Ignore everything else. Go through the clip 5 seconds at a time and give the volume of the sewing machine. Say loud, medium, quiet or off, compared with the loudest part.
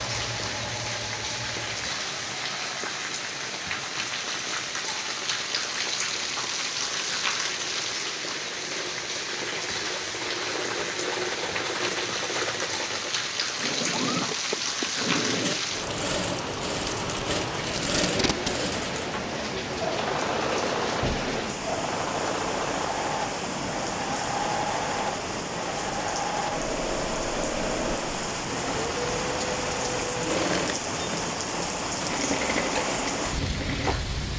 medium, medium, loud, loud, loud, loud, loud.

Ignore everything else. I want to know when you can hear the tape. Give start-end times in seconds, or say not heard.
17.6-18.6.